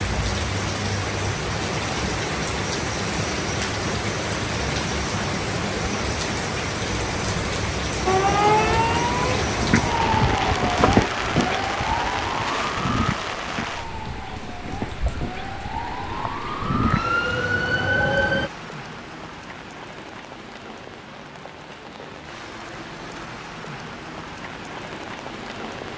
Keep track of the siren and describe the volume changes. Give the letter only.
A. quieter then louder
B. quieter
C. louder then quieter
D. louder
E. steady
A.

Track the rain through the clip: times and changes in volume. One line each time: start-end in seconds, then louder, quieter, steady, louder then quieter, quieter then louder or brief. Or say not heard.
0.0-25.9 quieter.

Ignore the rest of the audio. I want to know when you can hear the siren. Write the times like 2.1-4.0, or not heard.
8.1-18.5.